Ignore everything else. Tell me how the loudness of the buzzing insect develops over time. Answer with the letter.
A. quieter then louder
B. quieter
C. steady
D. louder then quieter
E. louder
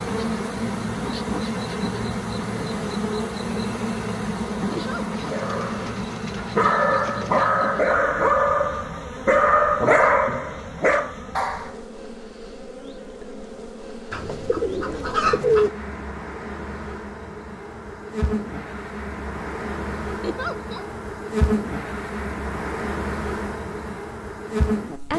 A.